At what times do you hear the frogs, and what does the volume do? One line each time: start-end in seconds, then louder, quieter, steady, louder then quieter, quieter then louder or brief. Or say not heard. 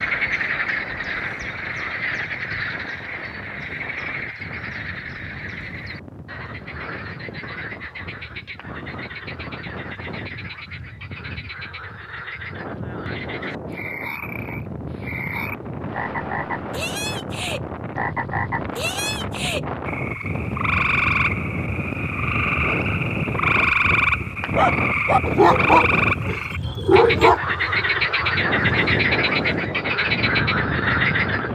0.0-31.4 quieter then louder.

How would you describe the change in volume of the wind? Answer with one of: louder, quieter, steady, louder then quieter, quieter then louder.
louder.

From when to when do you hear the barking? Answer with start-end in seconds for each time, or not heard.
24.6-27.4.